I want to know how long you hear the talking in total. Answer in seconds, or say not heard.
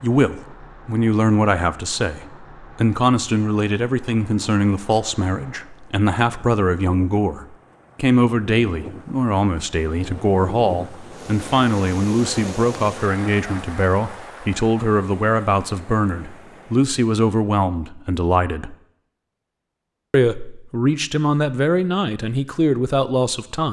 22 s.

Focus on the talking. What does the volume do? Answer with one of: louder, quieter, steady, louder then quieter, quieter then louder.
steady.